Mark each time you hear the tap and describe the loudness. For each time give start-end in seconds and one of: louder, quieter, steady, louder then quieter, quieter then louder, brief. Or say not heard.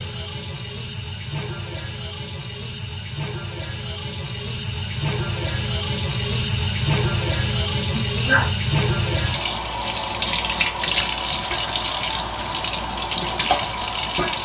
0.0-14.4 louder.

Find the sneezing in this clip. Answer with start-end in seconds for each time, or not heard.
8.0-8.5.